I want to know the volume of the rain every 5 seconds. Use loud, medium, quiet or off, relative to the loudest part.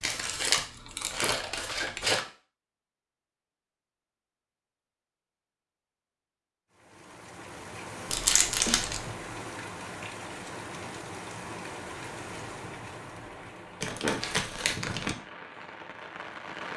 off, loud, loud, loud.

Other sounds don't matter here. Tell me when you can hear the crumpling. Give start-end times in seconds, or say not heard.
0.0-2.2, 8.1-9.1, 13.8-15.2.